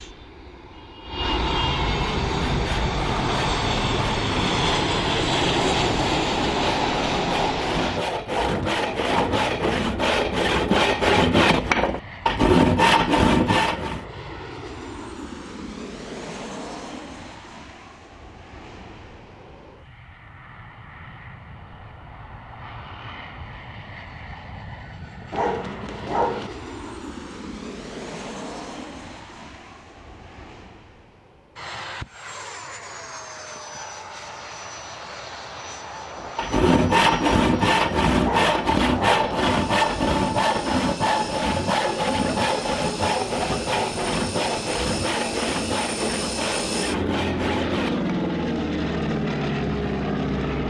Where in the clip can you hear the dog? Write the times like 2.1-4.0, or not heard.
8.3-9.4, 25.3-26.5, 38.2-39.4.